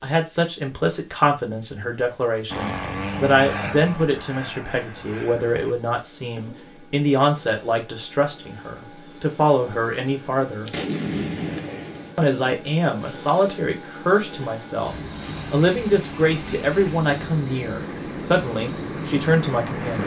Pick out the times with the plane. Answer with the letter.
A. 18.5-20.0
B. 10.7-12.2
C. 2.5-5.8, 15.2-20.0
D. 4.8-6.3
C.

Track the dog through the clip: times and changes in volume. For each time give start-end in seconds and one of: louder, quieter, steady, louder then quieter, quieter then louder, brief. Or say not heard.
not heard.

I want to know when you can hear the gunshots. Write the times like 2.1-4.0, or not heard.
10.7-12.2.